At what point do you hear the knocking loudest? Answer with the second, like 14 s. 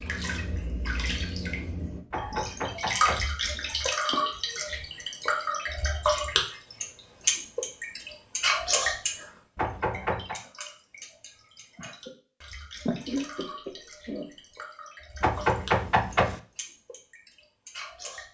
16 s.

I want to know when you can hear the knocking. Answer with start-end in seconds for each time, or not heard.
2.1-3.3, 9.6-10.4, 15.2-16.4.